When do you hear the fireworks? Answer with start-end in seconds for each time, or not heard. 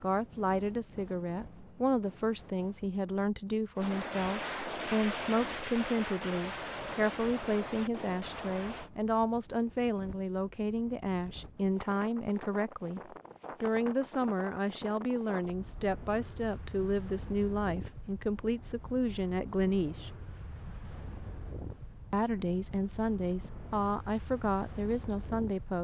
3.8-8.9.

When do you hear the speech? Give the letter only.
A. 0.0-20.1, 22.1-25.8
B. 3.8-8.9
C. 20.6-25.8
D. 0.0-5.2
A.